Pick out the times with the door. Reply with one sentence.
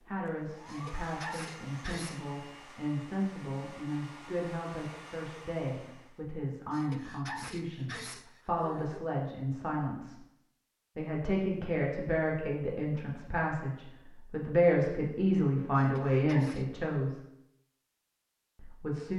You can't hear the door here.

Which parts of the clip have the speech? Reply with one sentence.
You can hear the speech from 0.0 to 10.2 s, from 10.9 to 17.2 s and from 18.6 to 19.1 s.